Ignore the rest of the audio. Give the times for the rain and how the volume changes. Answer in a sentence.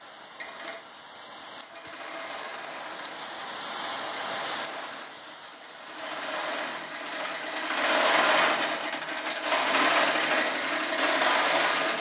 You can hear the rain from 0.0 to 6.5 s, getting louder then quieter.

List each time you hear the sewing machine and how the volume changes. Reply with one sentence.
The sewing machine can be heard from 0.2 to 11.9 s, getting louder.